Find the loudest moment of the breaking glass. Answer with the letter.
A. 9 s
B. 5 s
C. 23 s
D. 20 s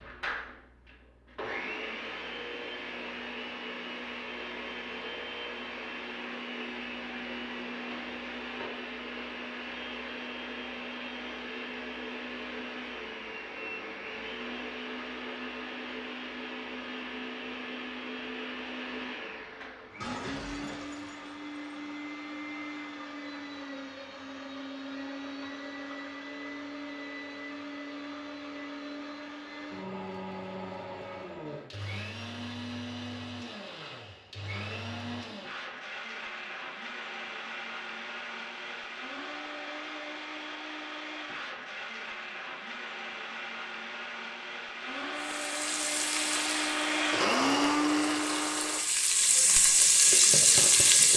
D.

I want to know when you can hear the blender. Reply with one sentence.
You can hear the blender from 0.0 to 48.8 s.